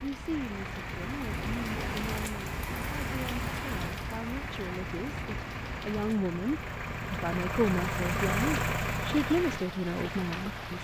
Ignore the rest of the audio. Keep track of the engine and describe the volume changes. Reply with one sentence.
The loudness of the engine goes up.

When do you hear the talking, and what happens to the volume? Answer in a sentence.
The talking can be heard from 0.0 to 10.7 s, getting louder.